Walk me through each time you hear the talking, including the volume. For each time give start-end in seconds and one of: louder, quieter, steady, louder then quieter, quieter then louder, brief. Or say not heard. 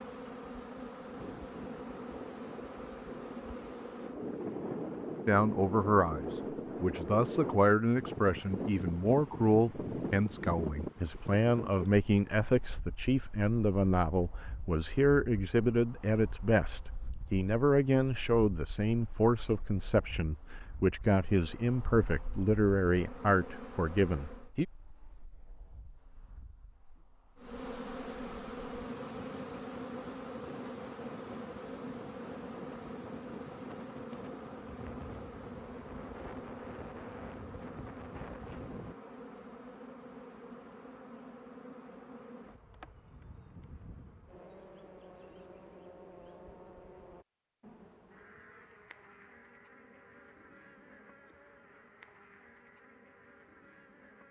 5.2-24.6 steady.